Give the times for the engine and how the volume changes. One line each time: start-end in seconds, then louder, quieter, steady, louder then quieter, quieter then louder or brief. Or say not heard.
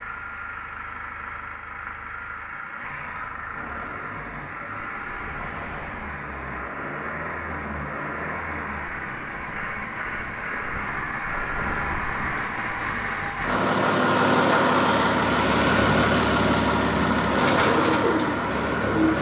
0.0-19.1 louder.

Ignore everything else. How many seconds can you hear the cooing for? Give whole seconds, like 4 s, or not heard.
2 s.